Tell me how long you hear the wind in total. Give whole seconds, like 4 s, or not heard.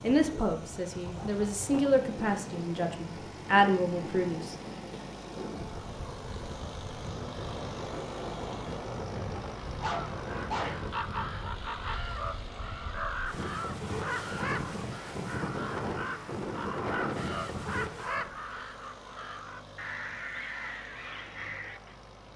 18 s.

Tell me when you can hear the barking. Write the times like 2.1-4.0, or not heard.
9.6-10.8.